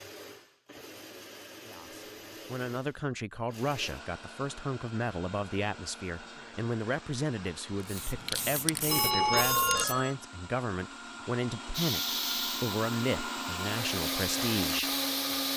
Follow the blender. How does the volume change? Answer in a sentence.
The volume of the blender goes up.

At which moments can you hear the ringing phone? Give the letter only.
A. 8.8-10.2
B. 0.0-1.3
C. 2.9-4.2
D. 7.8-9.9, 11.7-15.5
A.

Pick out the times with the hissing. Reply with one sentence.
You can hear the hissing from 7.8 to 9.9 s and from 11.7 to 15.5 s.